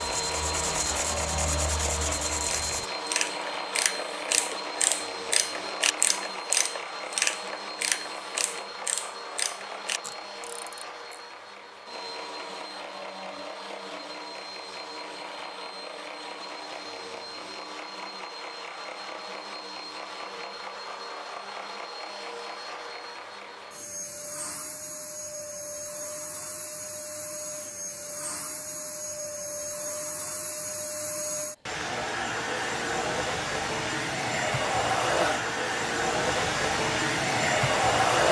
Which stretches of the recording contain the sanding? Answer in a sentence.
You can hear the sanding from 0.0 to 2.9 s.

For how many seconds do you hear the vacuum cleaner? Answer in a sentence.
The vacuum cleaner can be heard for 38 seconds in total.